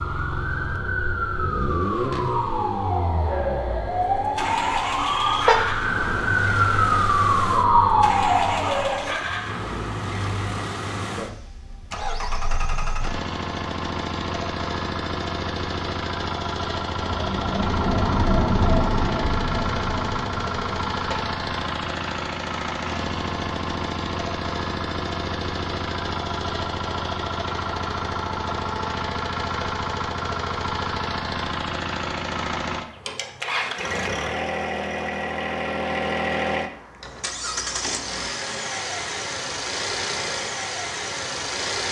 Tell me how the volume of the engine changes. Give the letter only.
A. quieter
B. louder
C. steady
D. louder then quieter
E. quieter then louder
C.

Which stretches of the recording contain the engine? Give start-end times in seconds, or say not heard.
0.0-41.8.